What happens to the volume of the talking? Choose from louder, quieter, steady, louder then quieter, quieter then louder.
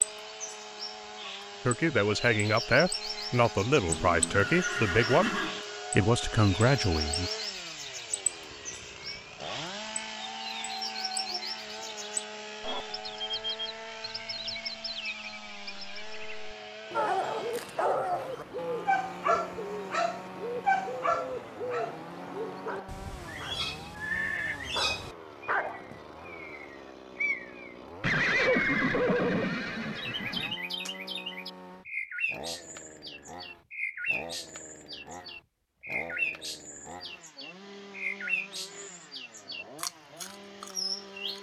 steady.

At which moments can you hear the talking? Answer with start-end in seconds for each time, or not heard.
1.6-7.3.